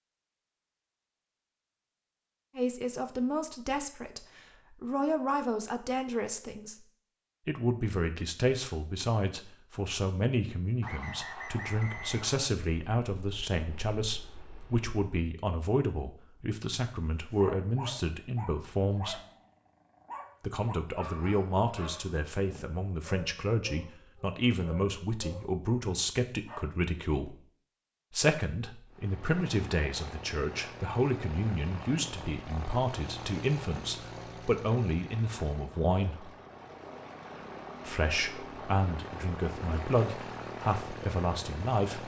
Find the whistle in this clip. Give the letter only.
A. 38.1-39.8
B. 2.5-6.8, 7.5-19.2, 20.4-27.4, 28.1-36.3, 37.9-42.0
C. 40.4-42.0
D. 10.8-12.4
D.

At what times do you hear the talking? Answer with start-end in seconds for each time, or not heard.
2.5-6.8, 7.5-19.2, 20.4-27.4, 28.1-36.3, 37.9-42.0.